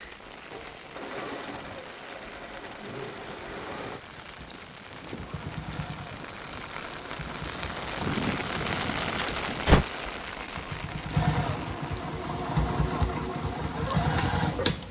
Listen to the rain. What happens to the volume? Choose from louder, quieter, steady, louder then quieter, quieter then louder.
louder then quieter.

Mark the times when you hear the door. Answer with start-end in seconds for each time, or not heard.
9.2-9.8.